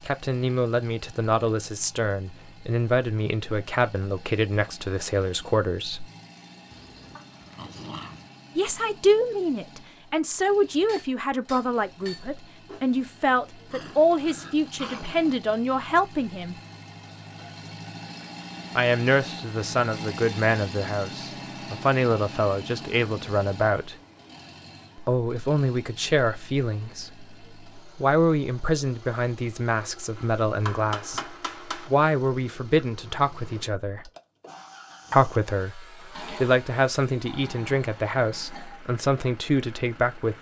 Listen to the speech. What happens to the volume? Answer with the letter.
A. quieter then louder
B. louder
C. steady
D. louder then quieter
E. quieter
C.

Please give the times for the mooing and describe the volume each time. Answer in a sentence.
You can't hear the mooing here.